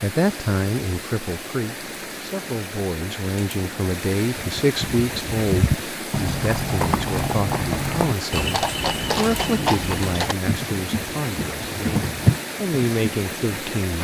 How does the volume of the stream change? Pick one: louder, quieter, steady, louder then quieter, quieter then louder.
steady.